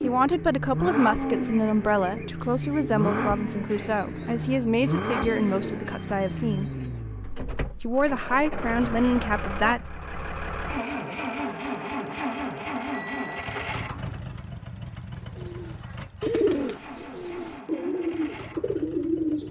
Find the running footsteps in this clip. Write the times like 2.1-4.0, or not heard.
not heard.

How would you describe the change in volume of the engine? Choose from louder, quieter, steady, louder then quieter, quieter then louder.
quieter.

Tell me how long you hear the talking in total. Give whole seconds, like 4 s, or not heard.
9 s.